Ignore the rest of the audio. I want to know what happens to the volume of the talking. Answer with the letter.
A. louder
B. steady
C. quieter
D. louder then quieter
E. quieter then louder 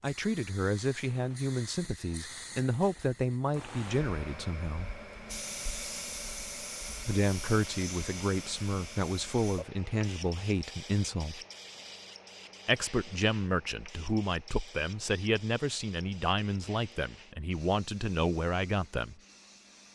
B.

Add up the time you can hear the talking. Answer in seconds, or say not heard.
16 s.